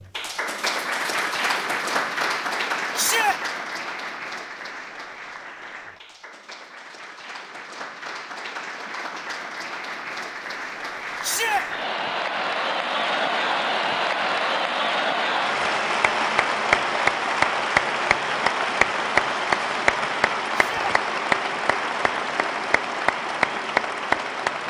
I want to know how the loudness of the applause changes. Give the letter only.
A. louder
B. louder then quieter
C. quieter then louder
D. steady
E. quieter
C.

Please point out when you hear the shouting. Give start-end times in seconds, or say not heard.
3.0-3.4, 11.2-11.7, 20.5-20.9.